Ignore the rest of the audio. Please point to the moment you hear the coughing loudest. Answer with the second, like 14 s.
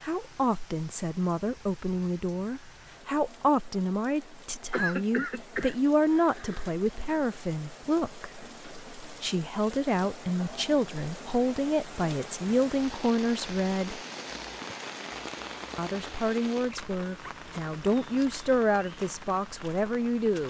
5 s.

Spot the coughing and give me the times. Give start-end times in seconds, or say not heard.
4.7-6.7.